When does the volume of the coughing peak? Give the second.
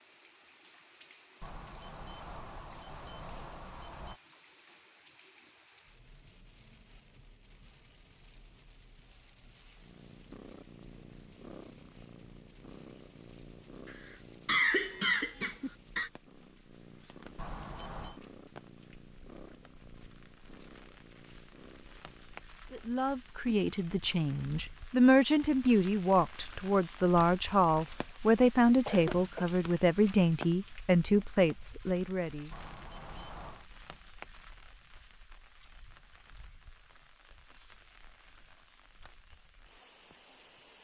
15 s.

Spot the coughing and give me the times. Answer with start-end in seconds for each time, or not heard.
13.8-16.1, 28.9-29.4.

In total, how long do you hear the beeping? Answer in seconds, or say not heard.
5 s.